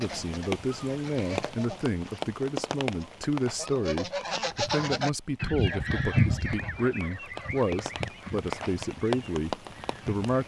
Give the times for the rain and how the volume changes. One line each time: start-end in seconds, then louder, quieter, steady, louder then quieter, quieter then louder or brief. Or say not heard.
0.0-10.4 quieter then louder.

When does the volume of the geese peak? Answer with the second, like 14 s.
6 s.